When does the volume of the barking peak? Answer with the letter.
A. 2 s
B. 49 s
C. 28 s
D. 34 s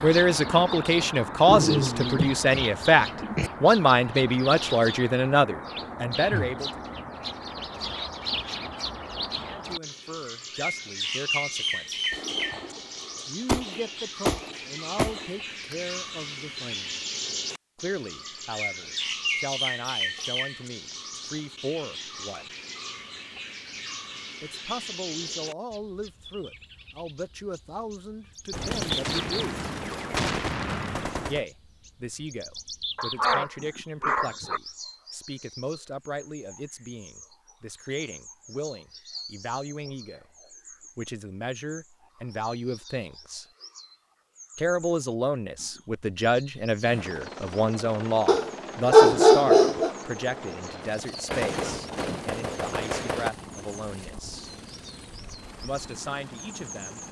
B.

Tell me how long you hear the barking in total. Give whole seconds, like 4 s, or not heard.
5 s.